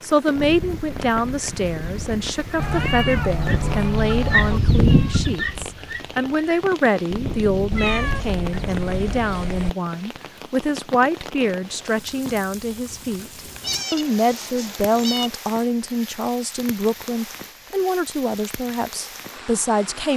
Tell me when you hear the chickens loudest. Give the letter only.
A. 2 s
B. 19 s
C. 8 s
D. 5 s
D.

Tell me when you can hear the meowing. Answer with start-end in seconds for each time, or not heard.
2.5-4.6, 7.7-9.7, 13.6-15.3.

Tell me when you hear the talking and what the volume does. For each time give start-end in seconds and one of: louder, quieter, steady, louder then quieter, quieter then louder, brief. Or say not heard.
0.0-20.1 steady.